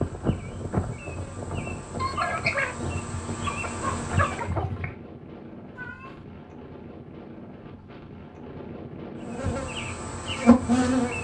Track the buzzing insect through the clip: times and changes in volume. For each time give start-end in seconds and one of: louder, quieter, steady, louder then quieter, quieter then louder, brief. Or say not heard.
0.0-4.5 louder
9.2-11.2 brief.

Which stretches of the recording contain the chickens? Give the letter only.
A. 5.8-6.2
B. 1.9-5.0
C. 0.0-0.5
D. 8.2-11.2
B.